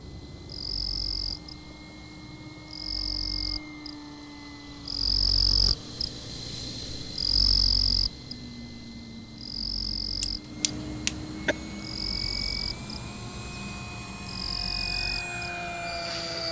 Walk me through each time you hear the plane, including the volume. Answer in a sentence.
You can hear the plane from 0.0 to 16.4 s, getting louder.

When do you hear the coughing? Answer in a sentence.
You can hear the coughing from 10.2 to 11.6 s.